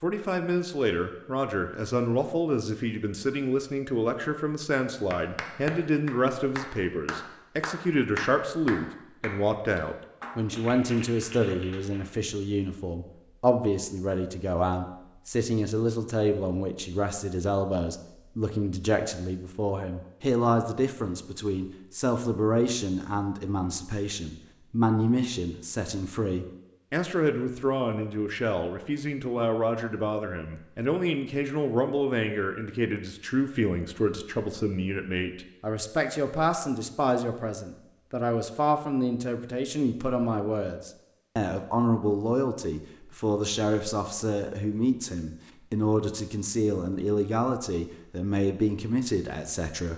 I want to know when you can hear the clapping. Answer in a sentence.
The clapping can be heard from 5.1 to 12.1 s.